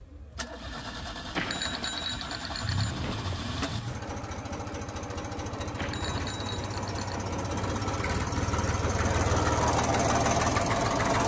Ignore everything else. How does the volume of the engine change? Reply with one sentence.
The volume of the engine goes up.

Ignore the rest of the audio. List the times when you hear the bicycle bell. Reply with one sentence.
You can hear the bicycle bell from 1.4 to 3.4 s and from 5.8 to 7.2 s.